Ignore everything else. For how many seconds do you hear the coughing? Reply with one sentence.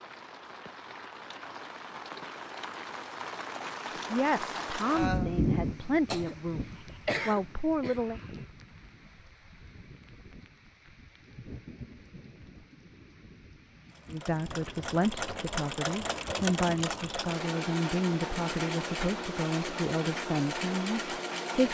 You can hear the coughing for 2 seconds altogether.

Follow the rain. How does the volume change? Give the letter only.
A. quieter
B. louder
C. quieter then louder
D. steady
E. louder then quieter
E.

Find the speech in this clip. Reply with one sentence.
The speech can be heard from 4.1 to 8.2 s and from 14.1 to 21.6 s.